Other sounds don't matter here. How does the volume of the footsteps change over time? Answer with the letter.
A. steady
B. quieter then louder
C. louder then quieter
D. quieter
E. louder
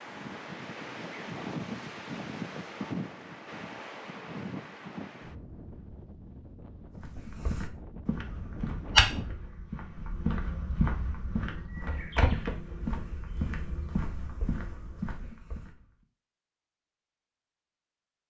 C.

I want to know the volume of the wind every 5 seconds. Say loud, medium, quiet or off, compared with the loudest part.
loud, medium, off, off.